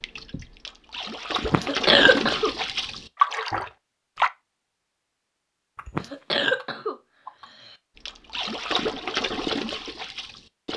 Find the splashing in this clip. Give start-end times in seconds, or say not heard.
0.0-4.3, 8.0-10.7.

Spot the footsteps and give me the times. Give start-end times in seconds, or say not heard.
not heard.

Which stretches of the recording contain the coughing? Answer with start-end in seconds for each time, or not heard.
1.4-2.5, 5.8-7.8.